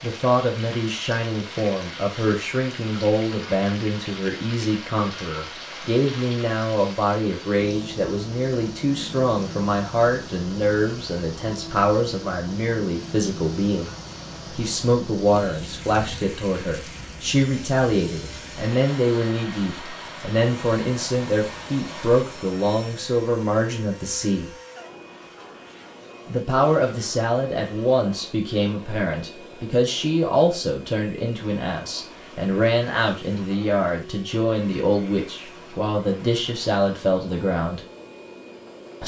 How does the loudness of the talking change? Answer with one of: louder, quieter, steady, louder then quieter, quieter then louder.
steady.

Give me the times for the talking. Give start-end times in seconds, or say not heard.
0.0-13.9, 14.6-24.5, 26.2-37.8.